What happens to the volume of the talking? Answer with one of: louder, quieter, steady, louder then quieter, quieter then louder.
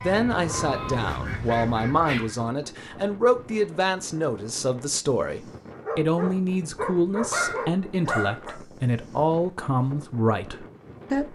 steady.